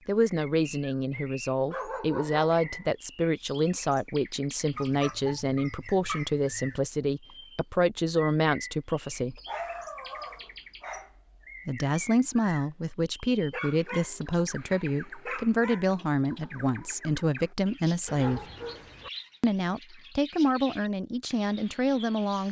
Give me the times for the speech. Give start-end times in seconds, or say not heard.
0.1-9.4, 11.7-18.4, 19.4-22.4.